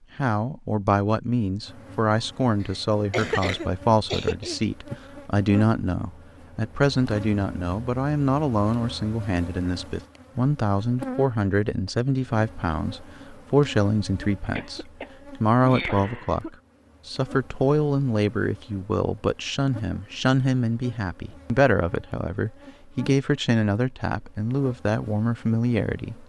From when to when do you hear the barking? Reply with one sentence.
You can't hear the barking here.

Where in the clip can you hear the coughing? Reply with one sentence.
You can hear the coughing from 3.1 to 4.6 s and from 14.6 to 16.5 s.